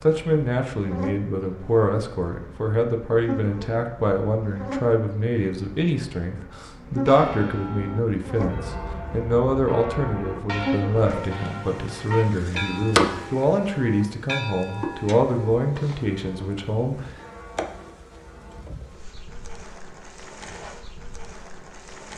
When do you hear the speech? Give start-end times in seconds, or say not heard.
0.0-17.0.